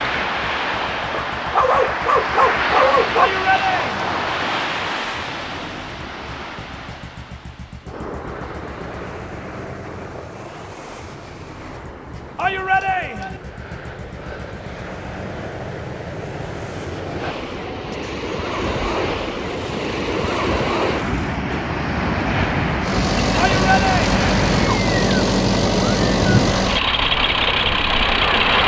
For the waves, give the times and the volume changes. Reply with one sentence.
The waves can be heard from 0.0 to 28.6 s, getting quieter then louder.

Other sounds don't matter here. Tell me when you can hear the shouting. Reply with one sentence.
You can hear the shouting from 3.1 to 4.2 s, from 12.3 to 13.4 s and from 23.4 to 24.1 s.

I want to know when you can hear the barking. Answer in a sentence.
The barking can be heard from 1.1 to 3.3 s.